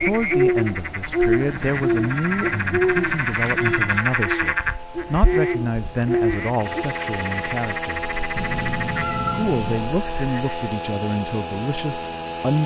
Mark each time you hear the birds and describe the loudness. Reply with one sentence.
The birds can be heard from 0.0 to 6.8 s, getting quieter then louder.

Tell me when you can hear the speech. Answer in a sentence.
The speech can be heard from 0.0 to 8.1 s and from 9.3 to 12.6 s.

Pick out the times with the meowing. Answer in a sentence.
You can hear the meowing from 1.5 to 4.0 s and from 8.3 to 9.8 s.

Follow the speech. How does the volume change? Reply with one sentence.
The loudness of the speech stays about the same.